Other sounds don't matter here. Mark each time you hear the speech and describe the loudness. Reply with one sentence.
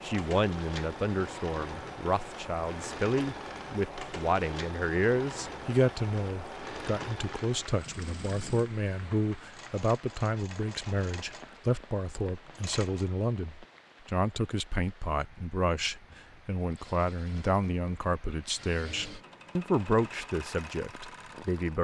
The speech can be heard from 0.0 to 21.8 s, at a steady volume.